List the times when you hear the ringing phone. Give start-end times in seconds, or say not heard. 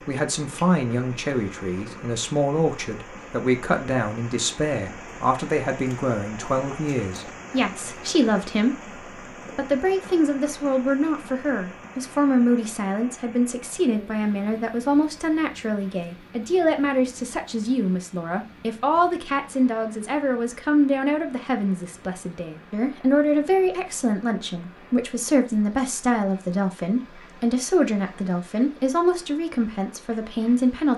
not heard.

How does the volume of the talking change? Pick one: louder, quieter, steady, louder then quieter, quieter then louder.
steady.